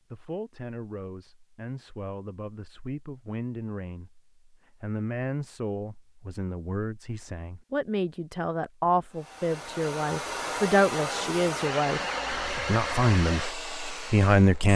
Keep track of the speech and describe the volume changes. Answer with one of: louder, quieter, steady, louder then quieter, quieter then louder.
louder.